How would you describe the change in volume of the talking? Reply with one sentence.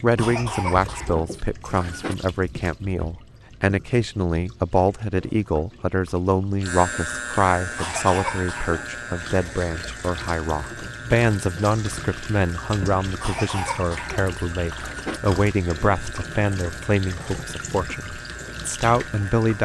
The volume of the talking stays about the same.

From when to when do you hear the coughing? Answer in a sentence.
The coughing can be heard from 0.1 to 2.1 s, from 7.8 to 8.9 s and from 13.2 to 15.2 s.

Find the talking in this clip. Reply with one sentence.
You can hear the talking from 0.0 to 19.5 s.